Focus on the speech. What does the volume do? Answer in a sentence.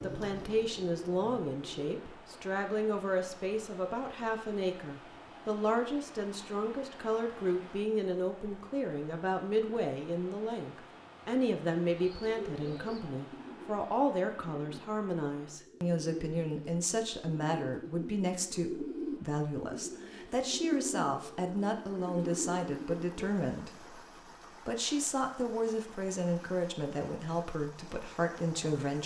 The loudness of the speech stays about the same.